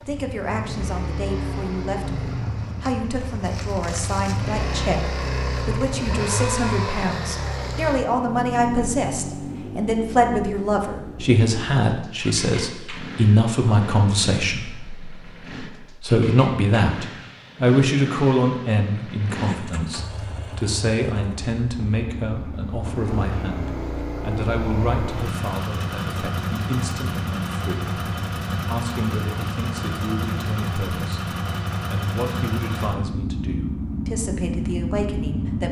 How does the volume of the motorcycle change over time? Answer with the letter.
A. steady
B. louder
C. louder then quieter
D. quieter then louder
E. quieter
D.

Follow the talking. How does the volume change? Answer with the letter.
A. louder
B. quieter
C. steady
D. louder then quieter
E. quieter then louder
D.